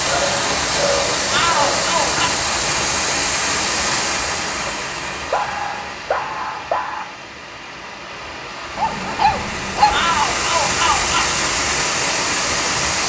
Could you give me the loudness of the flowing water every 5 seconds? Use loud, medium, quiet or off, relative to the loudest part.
loud, medium, loud.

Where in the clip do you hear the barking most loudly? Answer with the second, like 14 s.
10 s.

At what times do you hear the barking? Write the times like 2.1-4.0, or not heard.
0.1-1.9, 5.3-7.0, 8.8-10.2.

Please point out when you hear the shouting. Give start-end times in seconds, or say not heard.
1.3-2.3, 9.9-11.3.